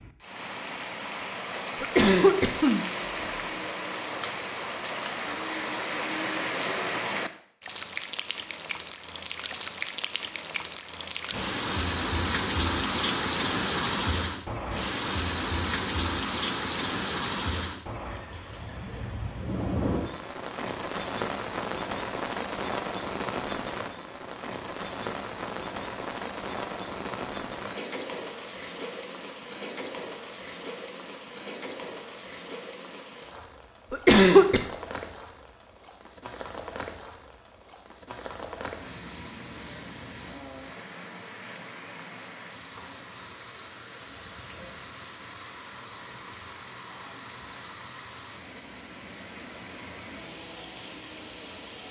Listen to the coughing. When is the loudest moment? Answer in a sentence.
The volume of the coughing peaks at 34 seconds.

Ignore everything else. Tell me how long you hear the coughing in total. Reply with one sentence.
You can hear the coughing for 2 seconds altogether.